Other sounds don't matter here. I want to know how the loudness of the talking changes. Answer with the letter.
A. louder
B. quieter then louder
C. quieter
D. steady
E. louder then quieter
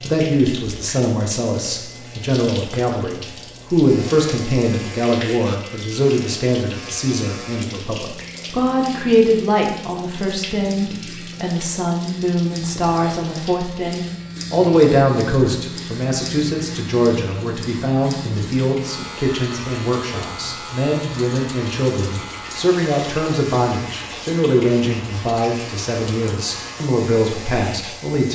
D.